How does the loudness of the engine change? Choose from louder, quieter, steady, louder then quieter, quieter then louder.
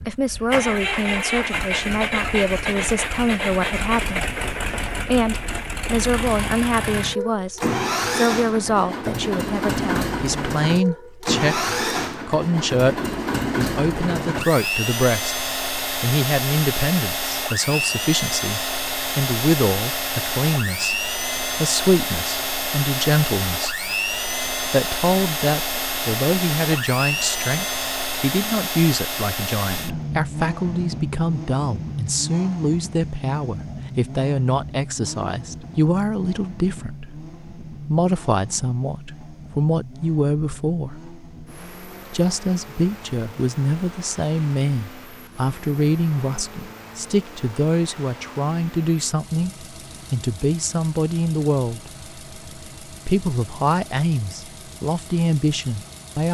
quieter.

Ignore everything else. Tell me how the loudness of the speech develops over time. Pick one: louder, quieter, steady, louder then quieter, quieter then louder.
steady.